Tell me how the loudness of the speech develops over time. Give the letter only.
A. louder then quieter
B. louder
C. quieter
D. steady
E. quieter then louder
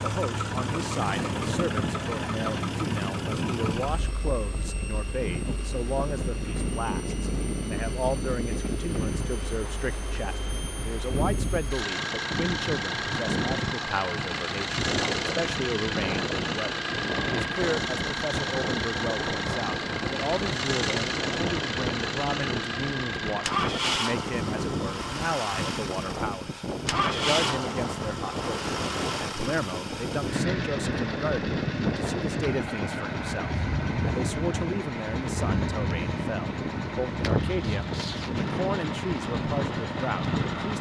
D.